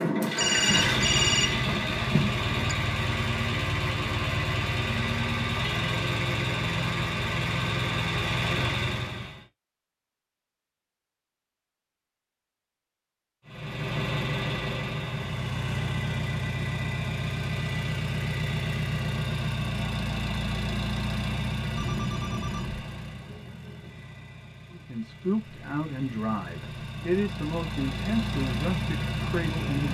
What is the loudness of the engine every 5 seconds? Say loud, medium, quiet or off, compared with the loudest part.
loud, loud, loud, loud, medium, medium.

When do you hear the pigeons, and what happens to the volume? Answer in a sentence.
You can't hear the pigeons here.